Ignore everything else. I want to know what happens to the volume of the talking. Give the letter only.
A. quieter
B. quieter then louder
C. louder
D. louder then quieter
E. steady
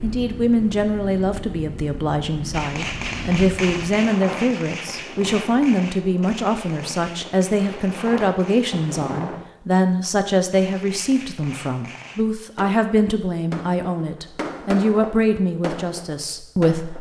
E.